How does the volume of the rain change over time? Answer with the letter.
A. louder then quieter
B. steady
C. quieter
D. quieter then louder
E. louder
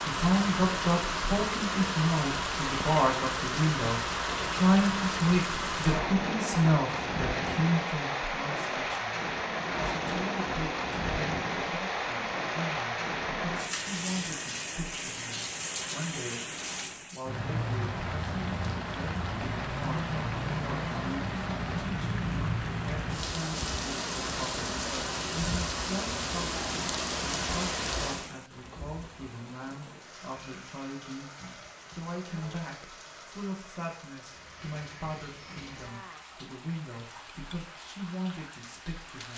C.